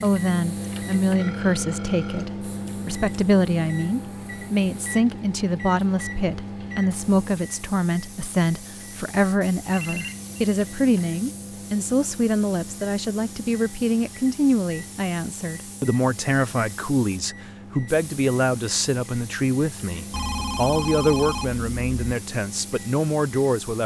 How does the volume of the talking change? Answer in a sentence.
The volume of the talking stays about the same.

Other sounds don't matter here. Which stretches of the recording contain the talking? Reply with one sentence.
The talking can be heard from 0.0 to 23.8 s.